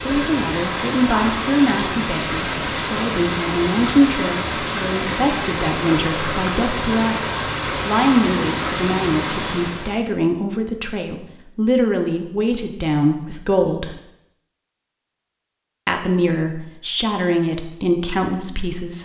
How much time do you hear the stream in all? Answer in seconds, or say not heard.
10 s.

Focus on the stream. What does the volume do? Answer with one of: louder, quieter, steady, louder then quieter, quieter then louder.
steady.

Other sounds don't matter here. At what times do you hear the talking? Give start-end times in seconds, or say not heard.
0.0-13.9, 15.8-19.0.